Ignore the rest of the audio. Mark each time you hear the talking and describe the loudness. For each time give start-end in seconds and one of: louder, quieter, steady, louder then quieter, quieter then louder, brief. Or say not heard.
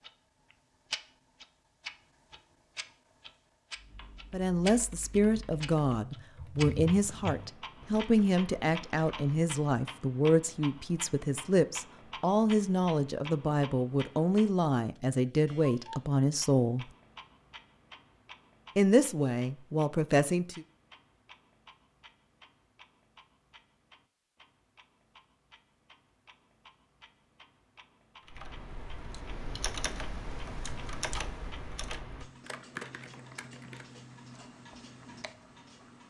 4.3-16.9 steady
18.8-20.6 brief.